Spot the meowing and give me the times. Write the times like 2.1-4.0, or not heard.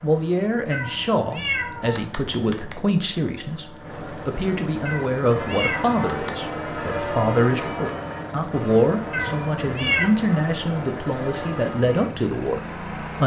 0.7-2.8, 4.8-6.5, 9.1-10.1.